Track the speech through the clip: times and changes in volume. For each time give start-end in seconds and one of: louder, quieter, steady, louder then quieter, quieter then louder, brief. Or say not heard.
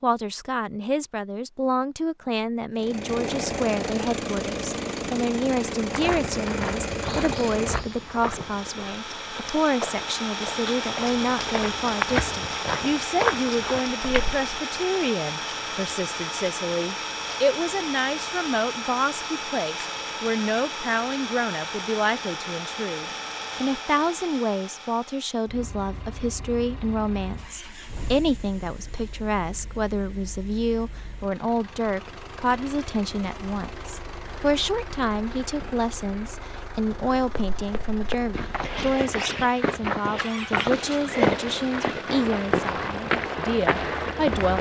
0.0-44.5 steady.